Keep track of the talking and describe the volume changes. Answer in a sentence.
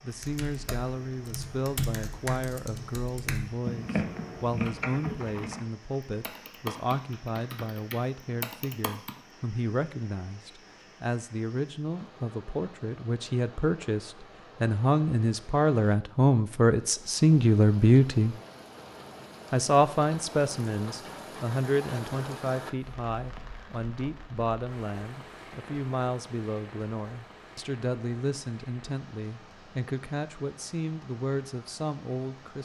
The volume of the talking goes up, then down.